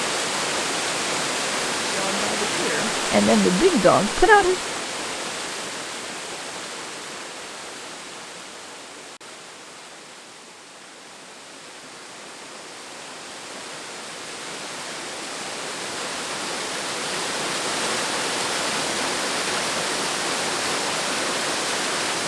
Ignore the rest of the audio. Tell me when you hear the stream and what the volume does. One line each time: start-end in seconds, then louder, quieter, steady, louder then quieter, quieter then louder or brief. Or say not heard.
0.0-22.2 quieter then louder.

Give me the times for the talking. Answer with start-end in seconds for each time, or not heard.
1.9-4.6.